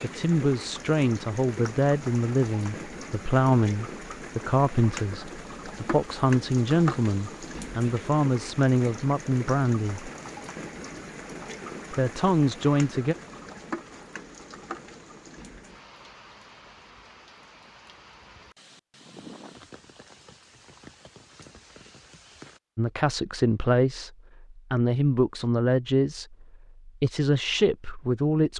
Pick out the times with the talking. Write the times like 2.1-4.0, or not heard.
0.0-10.1, 11.9-13.2, 22.8-28.5.